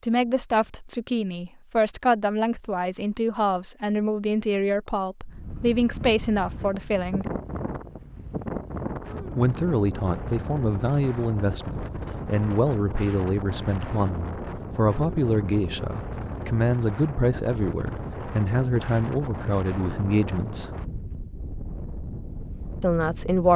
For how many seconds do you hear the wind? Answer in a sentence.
The wind can be heard for 18 seconds in total.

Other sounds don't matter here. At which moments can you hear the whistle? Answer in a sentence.
The whistle can't be heard in this clip.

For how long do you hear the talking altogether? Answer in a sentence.
The talking can be heard for 19 seconds in total.